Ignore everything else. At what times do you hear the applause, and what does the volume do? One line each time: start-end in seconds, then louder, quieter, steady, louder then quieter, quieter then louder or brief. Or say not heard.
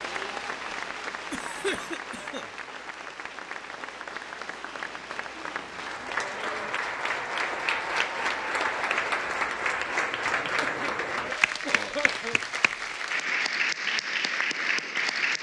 0.0-15.3 louder.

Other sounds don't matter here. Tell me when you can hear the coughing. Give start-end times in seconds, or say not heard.
1.3-2.5, 10.6-12.4.